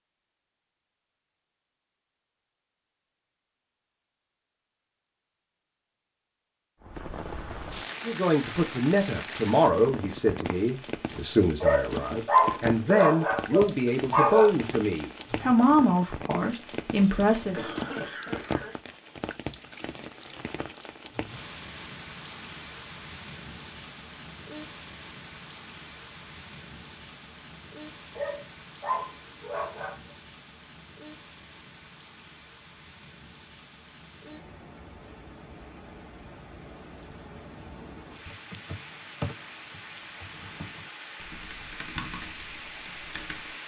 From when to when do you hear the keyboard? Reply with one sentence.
The keyboard can be heard from 38.2 to 43.6 s.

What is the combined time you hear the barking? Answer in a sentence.
The barking can be heard for 5 seconds in total.